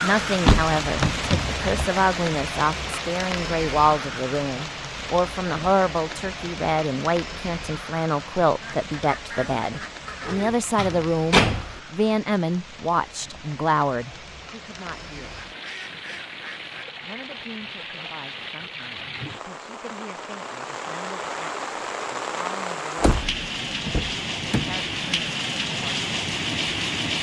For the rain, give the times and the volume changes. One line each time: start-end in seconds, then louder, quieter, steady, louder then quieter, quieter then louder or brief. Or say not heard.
0.0-27.1 quieter then louder.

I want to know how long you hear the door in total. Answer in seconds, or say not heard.
5 s.